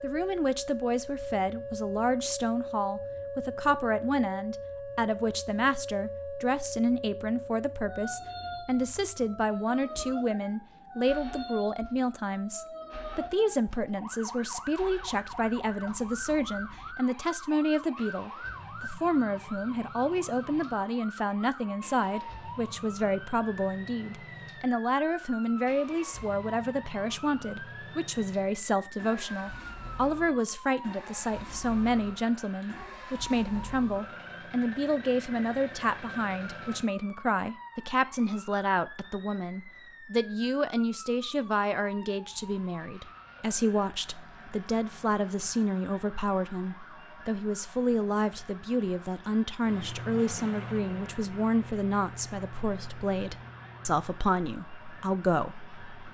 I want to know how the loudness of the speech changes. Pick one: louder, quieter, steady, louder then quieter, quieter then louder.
steady.